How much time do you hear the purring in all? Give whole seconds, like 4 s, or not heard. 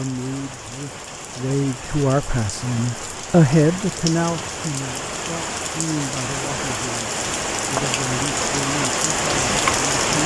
not heard.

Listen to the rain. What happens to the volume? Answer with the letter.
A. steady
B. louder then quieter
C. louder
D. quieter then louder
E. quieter
C.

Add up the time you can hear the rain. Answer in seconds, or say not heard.
10 s.